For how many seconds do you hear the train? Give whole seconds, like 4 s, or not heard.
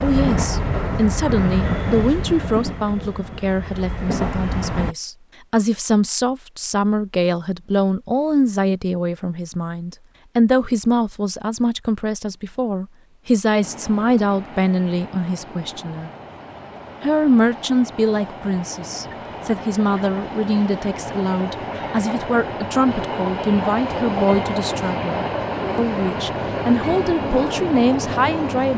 20 s.